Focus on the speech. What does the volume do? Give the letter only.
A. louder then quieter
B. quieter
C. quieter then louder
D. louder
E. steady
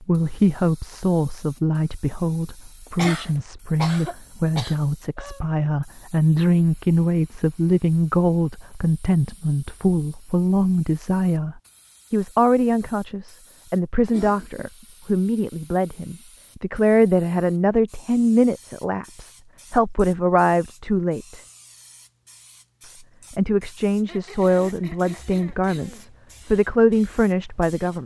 E.